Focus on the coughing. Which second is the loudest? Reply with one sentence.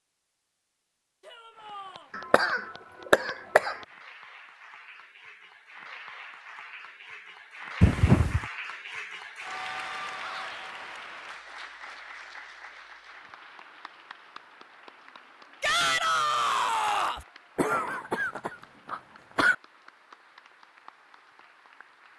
The volume of the coughing peaks at 8 seconds.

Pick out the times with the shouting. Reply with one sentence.
The shouting can be heard from 1.2 to 2.1 s, from 10.2 to 10.7 s and from 15.6 to 17.2 s.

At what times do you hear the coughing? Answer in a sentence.
The coughing can be heard from 2.1 to 3.8 s, from 7.8 to 8.4 s and from 17.6 to 19.6 s.